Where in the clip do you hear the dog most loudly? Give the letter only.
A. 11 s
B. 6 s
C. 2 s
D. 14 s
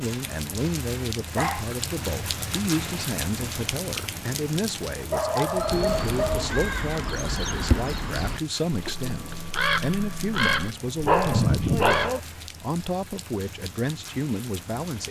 A.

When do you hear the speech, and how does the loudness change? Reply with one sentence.
You can hear the speech from 0.0 to 15.0 s, at a steady volume.